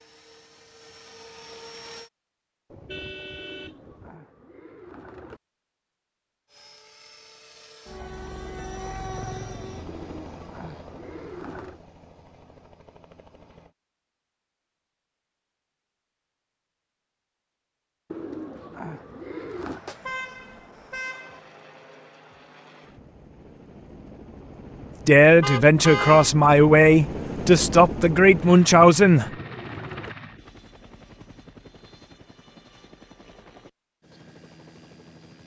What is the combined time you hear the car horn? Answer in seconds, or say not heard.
4 s.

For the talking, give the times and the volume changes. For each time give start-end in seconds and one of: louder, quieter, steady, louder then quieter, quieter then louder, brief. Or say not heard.
25.1-29.3 steady.